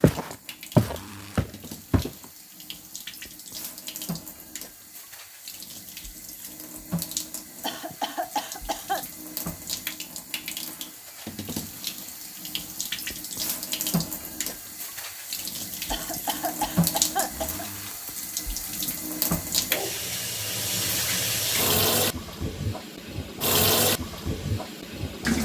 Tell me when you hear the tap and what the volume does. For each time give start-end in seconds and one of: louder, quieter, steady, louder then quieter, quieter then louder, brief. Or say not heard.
0.0-25.3 louder.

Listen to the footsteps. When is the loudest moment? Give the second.
1 s.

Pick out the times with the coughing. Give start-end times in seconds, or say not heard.
7.6-9.1, 15.9-17.7.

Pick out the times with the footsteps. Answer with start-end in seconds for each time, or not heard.
0.0-2.1.